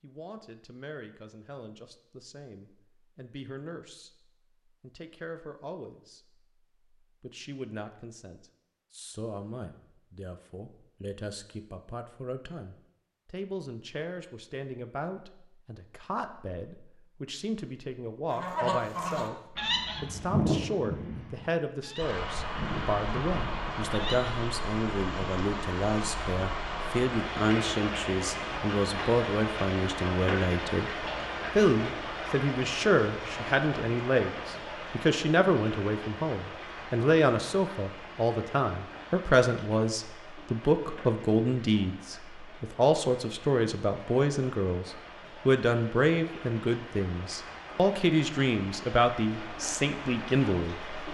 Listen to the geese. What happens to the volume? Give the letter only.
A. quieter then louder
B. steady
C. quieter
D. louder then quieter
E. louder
C.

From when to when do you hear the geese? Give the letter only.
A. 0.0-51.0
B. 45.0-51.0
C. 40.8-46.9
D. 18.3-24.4
D.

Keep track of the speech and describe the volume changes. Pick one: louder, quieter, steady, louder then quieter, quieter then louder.
louder.